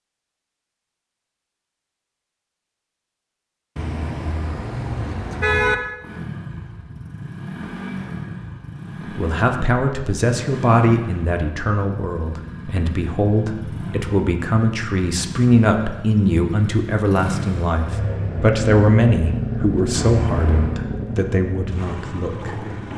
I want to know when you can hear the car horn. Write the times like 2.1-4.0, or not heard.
3.8-5.8, 19.9-20.8.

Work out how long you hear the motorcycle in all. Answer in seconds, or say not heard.
17 s.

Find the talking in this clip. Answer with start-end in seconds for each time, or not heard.
9.1-22.6.